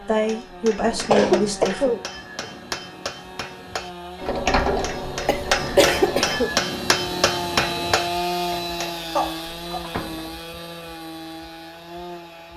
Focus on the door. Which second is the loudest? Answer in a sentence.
The loudest moment of the door is at 5 seconds.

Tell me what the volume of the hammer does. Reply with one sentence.
The loudness of the hammer goes up.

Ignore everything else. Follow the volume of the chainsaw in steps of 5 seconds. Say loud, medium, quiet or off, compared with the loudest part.
medium, loud, medium.